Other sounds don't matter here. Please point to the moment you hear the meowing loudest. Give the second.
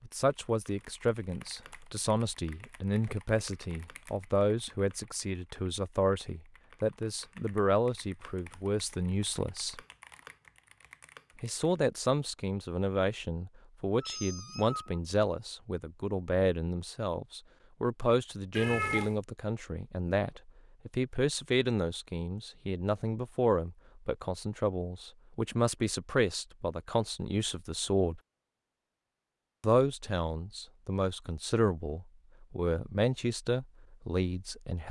19 s.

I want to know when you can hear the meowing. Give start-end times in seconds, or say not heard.
14.0-14.9, 18.6-19.1.